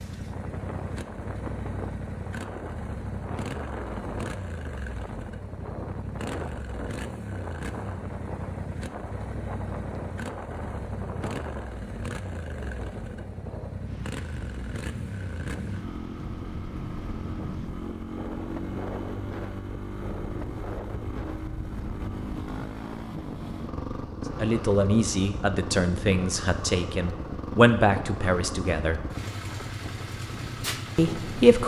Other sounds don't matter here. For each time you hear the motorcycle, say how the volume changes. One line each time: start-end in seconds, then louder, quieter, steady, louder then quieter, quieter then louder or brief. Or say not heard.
0.0-31.6 steady.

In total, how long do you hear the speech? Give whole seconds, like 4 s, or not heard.
5 s.